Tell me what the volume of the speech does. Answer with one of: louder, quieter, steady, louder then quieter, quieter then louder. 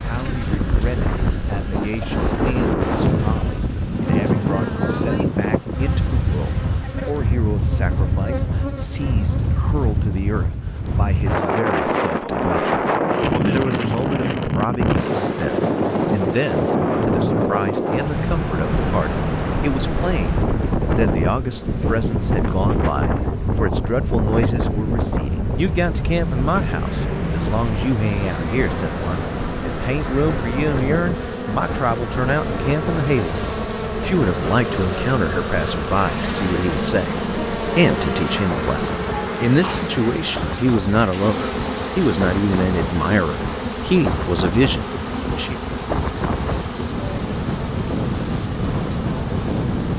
louder.